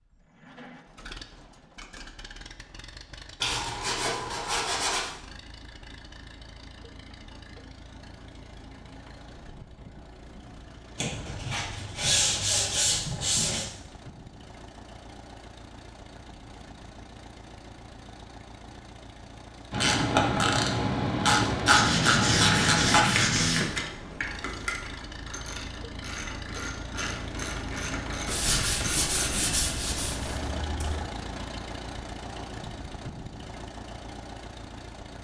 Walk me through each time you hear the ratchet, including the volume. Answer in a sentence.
You can hear the ratchet from 19.7 to 29.5 s, getting quieter.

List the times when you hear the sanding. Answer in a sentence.
You can hear the sanding from 3.4 to 5.1 s, from 10.9 to 13.7 s, from 21.6 to 23.6 s and from 28.2 to 31.0 s.